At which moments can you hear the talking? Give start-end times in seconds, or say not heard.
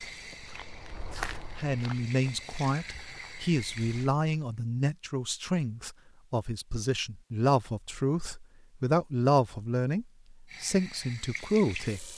1.6-12.1.